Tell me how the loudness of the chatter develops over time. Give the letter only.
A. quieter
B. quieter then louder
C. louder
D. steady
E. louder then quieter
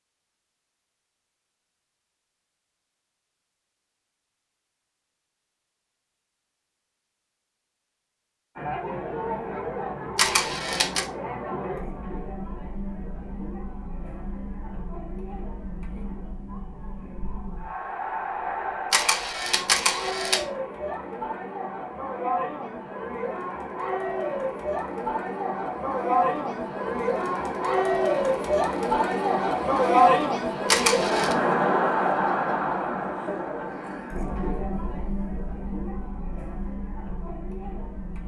E.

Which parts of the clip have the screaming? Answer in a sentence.
You can't hear the screaming here.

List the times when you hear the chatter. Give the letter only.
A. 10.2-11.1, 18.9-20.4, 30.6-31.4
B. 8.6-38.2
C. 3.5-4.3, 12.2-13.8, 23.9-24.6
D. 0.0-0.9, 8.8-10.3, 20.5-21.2
B.